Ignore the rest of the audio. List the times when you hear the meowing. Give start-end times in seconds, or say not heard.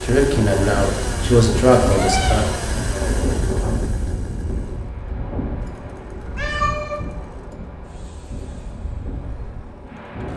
1.9-2.6, 6.2-7.2.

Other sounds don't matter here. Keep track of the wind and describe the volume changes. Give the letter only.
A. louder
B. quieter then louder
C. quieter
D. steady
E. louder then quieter
C.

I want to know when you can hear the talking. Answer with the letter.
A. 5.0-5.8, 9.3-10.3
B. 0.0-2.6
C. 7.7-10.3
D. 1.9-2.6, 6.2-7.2
B.